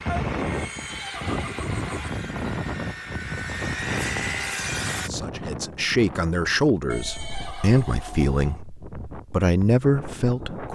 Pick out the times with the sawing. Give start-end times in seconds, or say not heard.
0.0-5.1.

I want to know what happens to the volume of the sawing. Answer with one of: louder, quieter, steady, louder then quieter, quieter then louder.
louder.